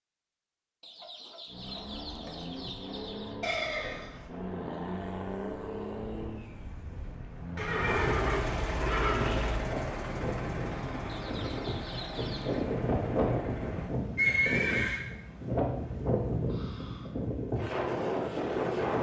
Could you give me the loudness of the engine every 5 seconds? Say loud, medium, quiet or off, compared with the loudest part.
loud, loud, loud, off.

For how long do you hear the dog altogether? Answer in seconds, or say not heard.
not heard.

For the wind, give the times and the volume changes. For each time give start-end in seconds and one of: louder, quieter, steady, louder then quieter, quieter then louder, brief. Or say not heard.
9.5-18.9 louder.